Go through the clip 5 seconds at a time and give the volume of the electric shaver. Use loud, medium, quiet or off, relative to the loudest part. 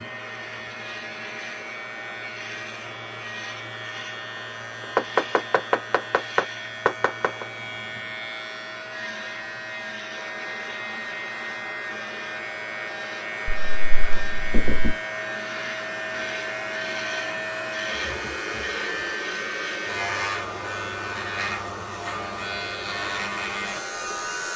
medium, medium, loud, loud, loud.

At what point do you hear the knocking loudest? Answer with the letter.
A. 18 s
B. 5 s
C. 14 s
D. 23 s
B.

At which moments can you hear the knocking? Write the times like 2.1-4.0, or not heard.
5.0-7.5, 13.4-14.9.